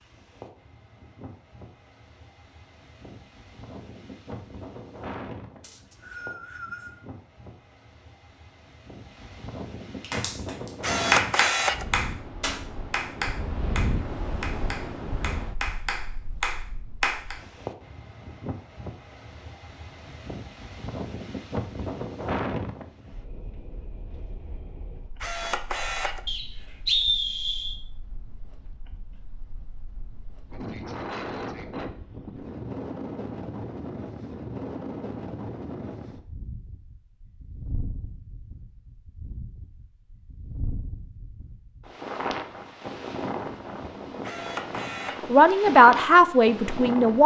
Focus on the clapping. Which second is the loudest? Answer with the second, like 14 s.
11 s.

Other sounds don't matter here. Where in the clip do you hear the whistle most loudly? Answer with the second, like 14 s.
27 s.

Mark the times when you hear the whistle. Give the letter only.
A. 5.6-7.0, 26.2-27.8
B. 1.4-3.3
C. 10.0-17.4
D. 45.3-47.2
A.